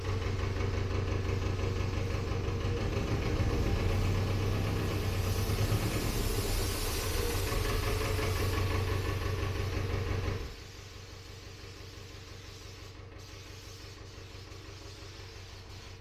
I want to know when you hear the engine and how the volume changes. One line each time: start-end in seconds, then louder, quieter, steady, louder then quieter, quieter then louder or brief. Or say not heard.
0.0-15.9 quieter.